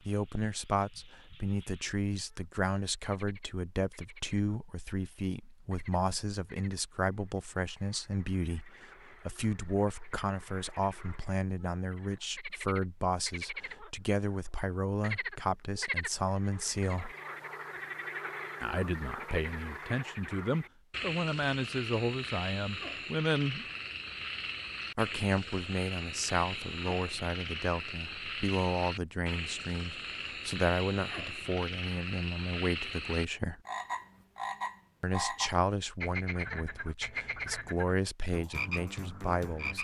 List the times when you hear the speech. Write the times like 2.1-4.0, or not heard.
0.1-17.1, 18.6-23.6, 24.9-33.6, 35.0-39.7.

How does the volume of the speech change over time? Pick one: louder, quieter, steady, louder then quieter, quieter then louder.
steady.